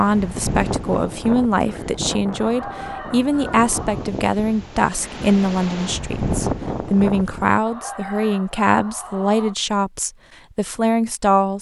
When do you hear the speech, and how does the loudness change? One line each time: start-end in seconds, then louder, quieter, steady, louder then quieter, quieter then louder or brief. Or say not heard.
0.0-11.5 steady.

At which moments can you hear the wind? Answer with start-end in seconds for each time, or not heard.
0.0-7.6.